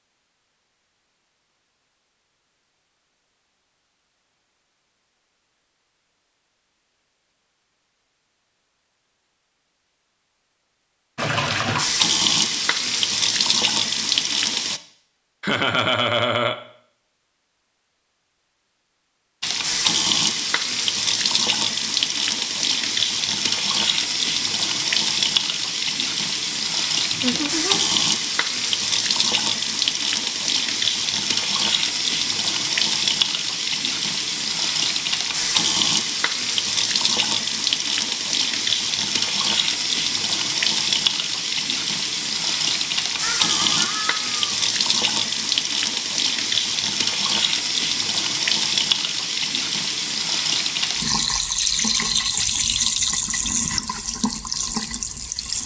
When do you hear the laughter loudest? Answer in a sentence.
The loudest moment of the laughter is at 16 seconds.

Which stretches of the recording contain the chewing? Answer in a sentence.
The chewing can't be heard in this clip.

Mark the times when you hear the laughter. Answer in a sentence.
The laughter can be heard from 15.4 to 16.6 s, from 27.1 to 27.8 s and from 43.2 to 44.3 s.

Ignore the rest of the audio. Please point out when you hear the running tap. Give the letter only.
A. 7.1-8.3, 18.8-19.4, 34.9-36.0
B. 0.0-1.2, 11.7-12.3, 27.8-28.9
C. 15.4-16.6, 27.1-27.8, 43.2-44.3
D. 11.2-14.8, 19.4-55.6
D.